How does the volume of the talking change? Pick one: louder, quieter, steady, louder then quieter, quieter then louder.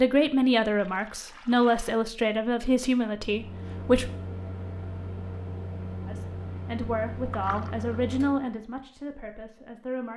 quieter.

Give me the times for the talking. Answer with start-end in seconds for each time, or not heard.
0.0-4.1, 6.0-10.1.